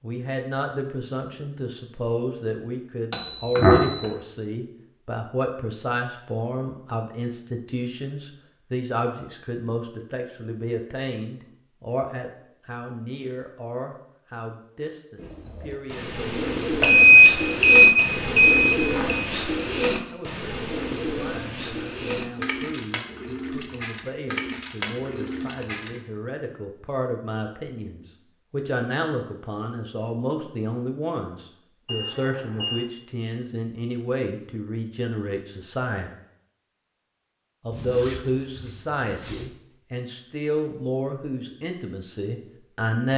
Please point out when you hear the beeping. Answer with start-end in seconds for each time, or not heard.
3.1-4.2, 16.8-19.2, 31.9-32.9.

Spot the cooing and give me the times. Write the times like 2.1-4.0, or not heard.
15.2-26.0.